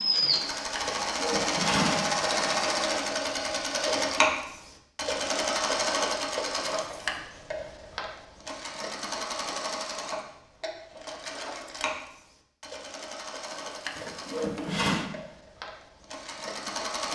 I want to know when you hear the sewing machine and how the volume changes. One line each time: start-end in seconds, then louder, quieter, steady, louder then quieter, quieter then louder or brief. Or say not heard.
0.0-17.1 quieter.